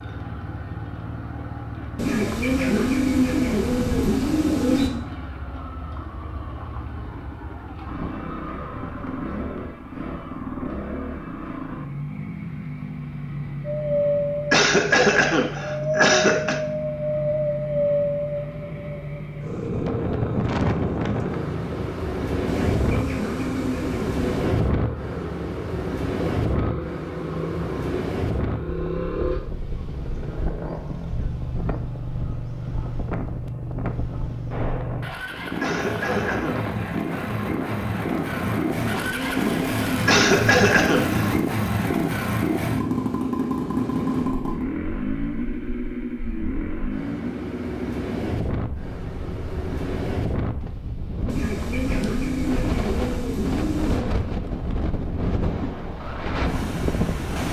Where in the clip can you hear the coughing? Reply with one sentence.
The coughing can be heard from 14.5 to 16.6 s, from 35.6 to 36.6 s and from 40.0 to 41.2 s.